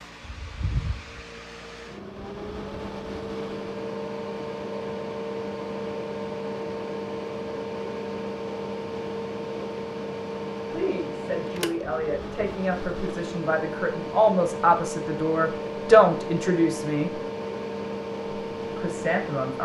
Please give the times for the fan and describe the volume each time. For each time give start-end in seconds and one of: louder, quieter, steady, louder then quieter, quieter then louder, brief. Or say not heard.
0.0-19.6 steady.